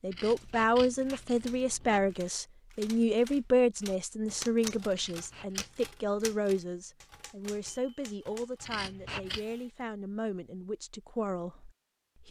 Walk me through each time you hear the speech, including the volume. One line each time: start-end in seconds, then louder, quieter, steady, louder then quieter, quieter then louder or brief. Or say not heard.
0.0-12.2 quieter.